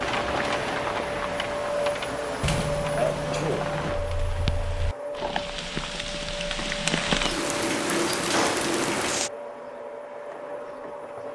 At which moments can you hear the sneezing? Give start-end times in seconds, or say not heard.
2.9-3.7.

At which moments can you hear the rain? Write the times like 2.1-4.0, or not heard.
0.0-9.3.